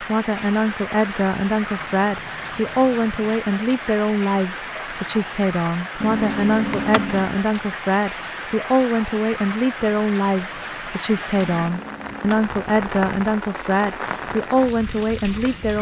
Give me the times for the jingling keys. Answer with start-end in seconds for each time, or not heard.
1.8-3.4, 6.0-7.4, 11.3-12.4.